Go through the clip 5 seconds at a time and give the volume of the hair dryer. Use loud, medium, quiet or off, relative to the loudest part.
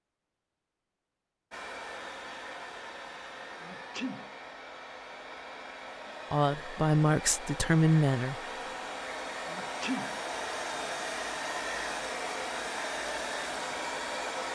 medium, medium, loud.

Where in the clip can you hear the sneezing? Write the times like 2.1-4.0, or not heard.
3.6-4.3, 9.4-10.2.